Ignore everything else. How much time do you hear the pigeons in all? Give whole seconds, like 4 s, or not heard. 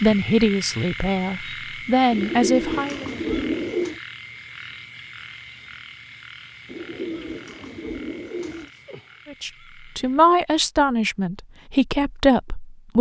4 s.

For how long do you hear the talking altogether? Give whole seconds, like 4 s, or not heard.
7 s.